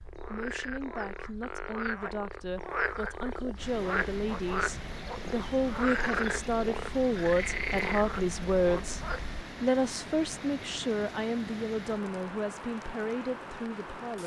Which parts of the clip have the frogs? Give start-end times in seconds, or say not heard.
0.0-9.4.